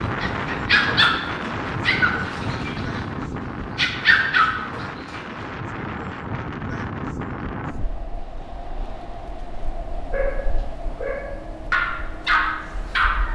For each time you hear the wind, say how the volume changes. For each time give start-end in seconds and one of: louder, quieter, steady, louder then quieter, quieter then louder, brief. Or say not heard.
0.0-13.3 quieter.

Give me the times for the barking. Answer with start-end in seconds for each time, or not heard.
0.2-5.2, 10.1-13.3.